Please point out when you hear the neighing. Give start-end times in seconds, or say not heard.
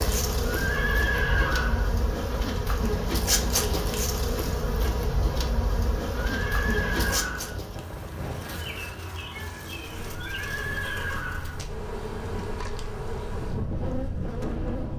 0.5-1.9, 6.2-7.6, 10.2-11.6.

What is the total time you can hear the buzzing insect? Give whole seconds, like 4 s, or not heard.
15 s.